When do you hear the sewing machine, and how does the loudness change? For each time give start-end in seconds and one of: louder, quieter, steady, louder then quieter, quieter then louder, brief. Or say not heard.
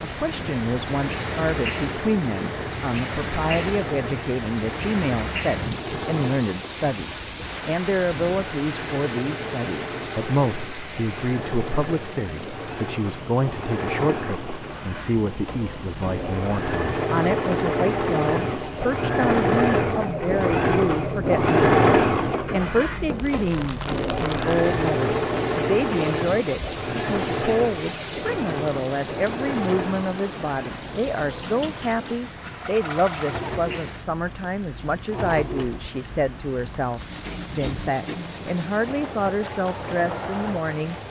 0.2-40.8 louder then quieter.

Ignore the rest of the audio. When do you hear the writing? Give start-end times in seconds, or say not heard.
not heard.